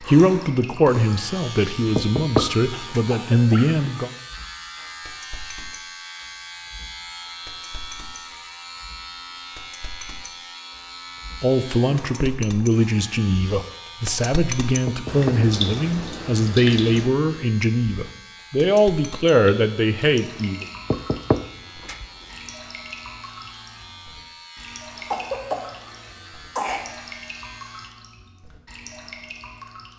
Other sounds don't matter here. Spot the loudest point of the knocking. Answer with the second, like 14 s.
2 s.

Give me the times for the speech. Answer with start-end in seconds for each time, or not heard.
0.0-4.1, 11.4-20.6.